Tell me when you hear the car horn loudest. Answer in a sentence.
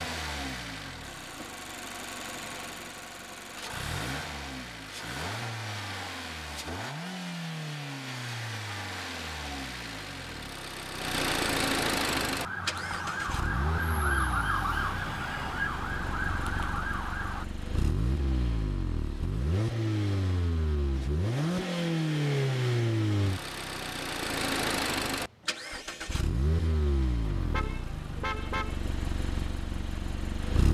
The volume of the car horn peaks at 28 seconds.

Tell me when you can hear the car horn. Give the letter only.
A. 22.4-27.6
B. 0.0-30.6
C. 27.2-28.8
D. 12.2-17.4
C.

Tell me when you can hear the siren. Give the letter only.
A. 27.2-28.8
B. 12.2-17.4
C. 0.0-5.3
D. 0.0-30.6
B.